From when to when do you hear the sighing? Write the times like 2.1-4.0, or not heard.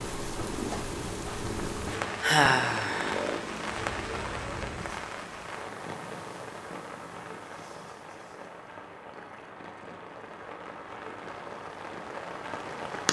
2.2-3.4.